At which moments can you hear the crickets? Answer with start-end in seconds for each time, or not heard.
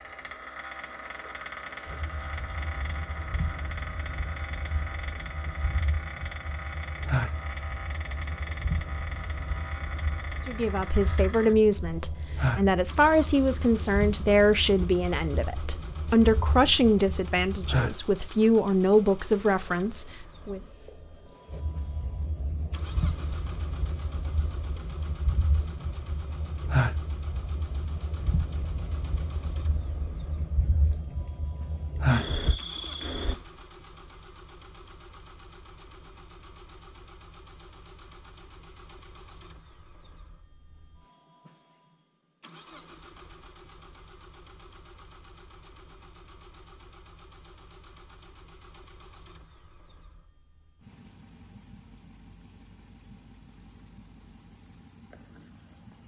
0.0-33.4.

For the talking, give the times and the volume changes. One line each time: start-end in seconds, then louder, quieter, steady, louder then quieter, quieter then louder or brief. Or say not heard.
10.4-20.6 steady.